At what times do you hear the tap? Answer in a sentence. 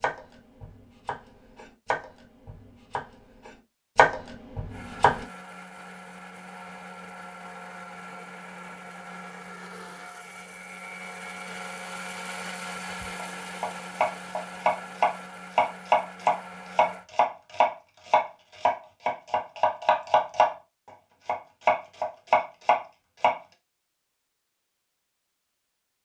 The tap can't be heard in this clip.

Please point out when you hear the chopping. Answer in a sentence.
The chopping can be heard from 0.0 to 5.2 s, from 13.2 to 20.6 s and from 21.2 to 23.4 s.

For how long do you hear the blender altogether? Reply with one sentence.
You can hear the blender for 12 seconds altogether.